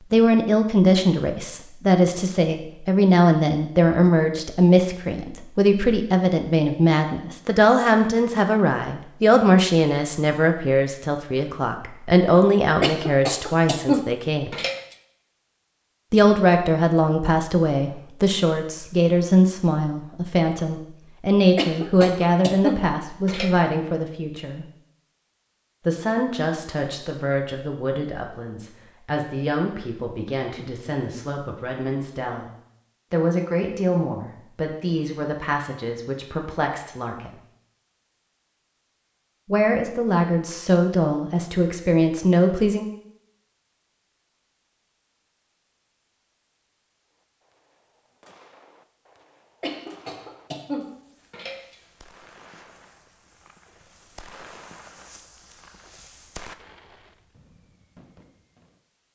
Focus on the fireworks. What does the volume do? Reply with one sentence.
The loudness of the fireworks goes up.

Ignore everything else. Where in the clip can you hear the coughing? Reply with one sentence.
You can hear the coughing from 12.8 to 14.8 s, from 21.6 to 23.6 s and from 49.6 to 51.8 s.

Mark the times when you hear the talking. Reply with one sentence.
You can hear the talking from 0.1 to 14.6 s, from 16.1 to 24.6 s, from 25.9 to 32.5 s, from 33.1 to 37.3 s and from 39.5 to 42.9 s.